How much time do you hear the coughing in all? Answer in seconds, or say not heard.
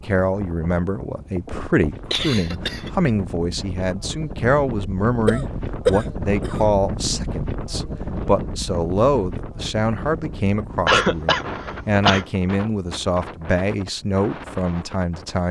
4 s.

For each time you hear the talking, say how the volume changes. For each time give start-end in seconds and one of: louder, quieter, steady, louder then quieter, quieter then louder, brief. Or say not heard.
0.1-15.4 steady.